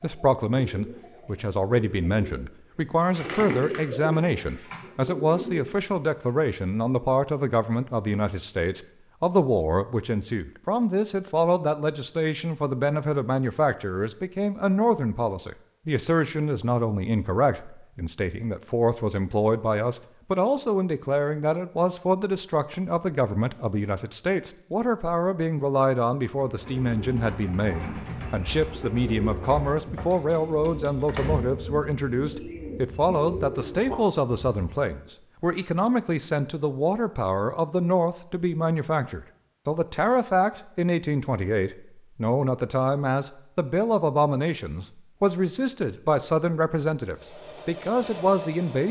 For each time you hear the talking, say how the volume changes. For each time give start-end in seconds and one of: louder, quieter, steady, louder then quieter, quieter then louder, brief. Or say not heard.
0.0-48.8 steady.